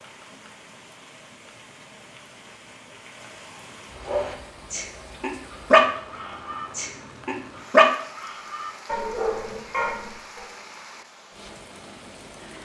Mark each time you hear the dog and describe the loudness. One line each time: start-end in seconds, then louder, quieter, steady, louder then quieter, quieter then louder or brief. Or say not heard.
4.0-10.4 louder then quieter.